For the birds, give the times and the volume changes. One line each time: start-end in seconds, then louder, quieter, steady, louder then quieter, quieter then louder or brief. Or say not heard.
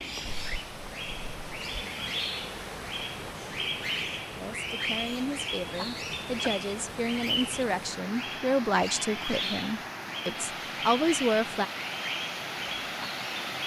0.0-13.6 steady.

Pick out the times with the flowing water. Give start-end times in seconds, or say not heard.
0.0-13.6.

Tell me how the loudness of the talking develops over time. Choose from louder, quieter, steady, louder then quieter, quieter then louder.
louder.